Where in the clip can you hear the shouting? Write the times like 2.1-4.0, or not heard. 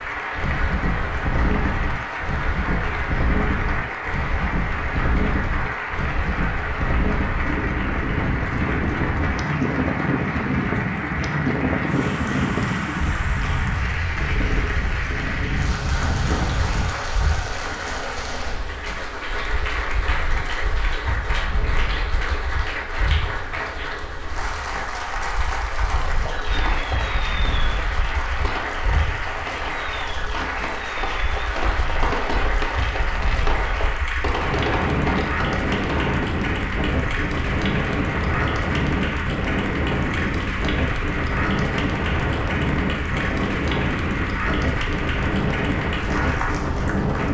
not heard.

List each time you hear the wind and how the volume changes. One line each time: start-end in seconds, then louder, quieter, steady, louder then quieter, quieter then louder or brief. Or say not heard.
0.0-47.2 quieter then louder.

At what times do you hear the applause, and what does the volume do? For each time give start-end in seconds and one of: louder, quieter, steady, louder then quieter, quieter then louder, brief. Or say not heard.
0.0-47.2 steady.